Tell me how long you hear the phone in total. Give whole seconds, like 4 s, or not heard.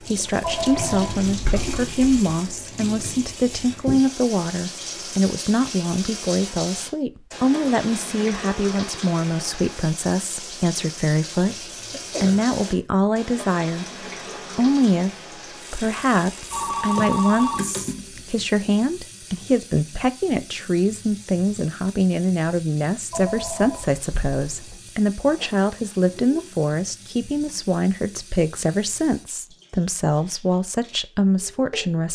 5 s.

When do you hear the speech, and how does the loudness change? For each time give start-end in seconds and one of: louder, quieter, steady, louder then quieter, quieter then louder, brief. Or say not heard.
0.0-15.1 steady
15.7-32.0 steady.